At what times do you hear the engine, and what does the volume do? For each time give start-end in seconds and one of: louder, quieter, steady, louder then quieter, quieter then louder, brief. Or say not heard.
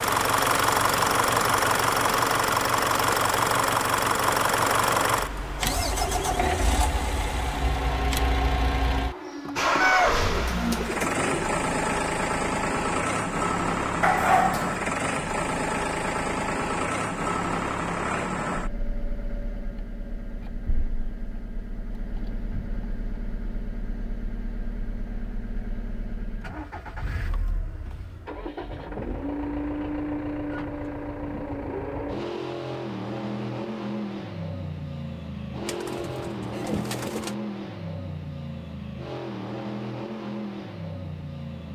0.0-41.7 quieter.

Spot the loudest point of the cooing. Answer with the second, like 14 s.
10 s.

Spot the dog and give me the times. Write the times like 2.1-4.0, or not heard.
14.0-14.8.